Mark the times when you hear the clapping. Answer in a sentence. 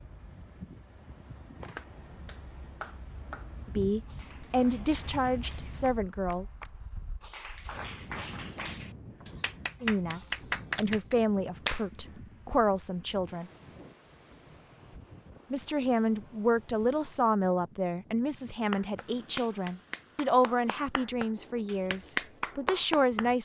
You can hear the clapping from 1.6 to 11.8 s and from 18.7 to 23.4 s.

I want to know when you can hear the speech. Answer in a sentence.
You can hear the speech from 3.6 to 6.5 s, from 9.8 to 13.5 s and from 15.5 to 23.4 s.